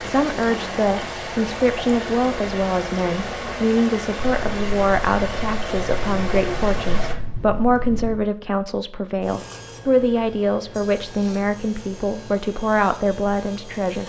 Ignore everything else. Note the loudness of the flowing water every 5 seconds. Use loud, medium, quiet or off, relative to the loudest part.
loud, loud, off.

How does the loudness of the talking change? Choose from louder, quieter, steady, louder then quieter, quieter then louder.
steady.